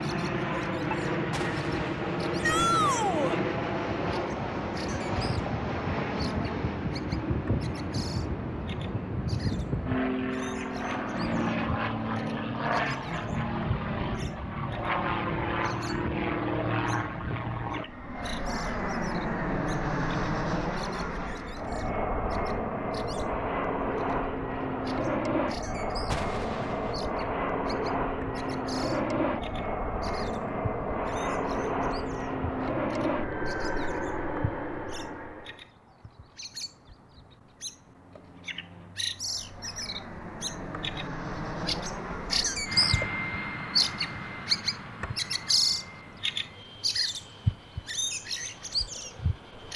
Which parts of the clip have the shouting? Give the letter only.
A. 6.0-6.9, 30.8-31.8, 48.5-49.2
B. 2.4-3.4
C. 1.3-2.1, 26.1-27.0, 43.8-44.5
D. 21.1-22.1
B.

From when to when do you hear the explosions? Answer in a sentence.
You can hear the explosions from 1.3 to 2.1 s, from 26.1 to 27.0 s and from 43.8 to 44.5 s.